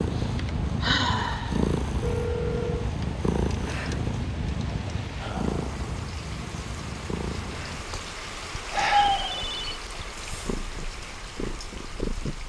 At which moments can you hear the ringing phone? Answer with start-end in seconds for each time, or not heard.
2.0-3.0, 9.2-9.8.